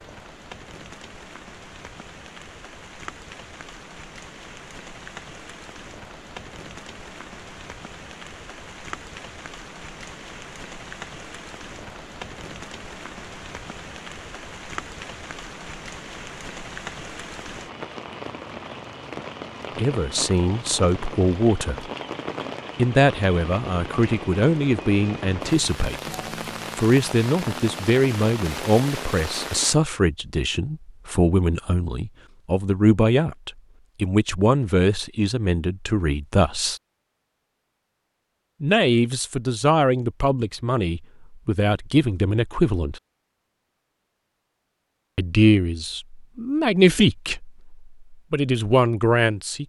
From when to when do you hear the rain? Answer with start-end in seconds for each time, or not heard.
0.0-29.8.